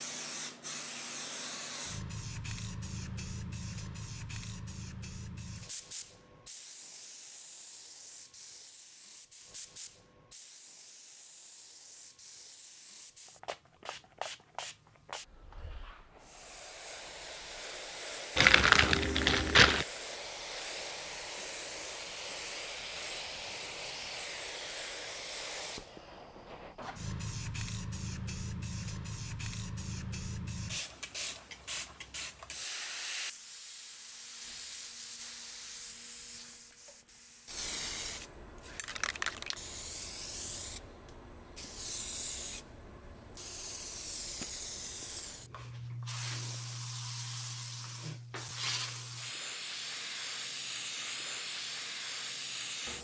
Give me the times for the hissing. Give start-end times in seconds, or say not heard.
0.0-52.9.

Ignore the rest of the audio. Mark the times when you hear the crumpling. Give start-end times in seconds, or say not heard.
18.4-19.9.